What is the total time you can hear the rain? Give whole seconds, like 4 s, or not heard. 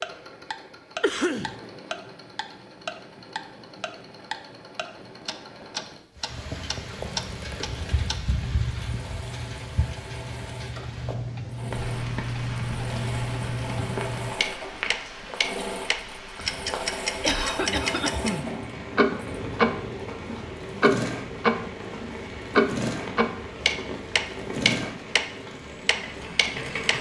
21 s.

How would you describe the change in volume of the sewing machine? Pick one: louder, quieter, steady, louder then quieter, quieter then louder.
louder.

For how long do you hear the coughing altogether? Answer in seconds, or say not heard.
2 s.